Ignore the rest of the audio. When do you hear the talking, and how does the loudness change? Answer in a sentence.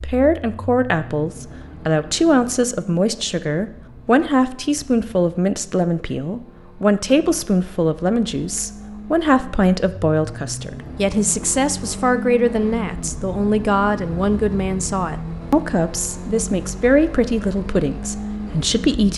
You can hear the talking from 0.0 to 19.1 s, at a steady volume.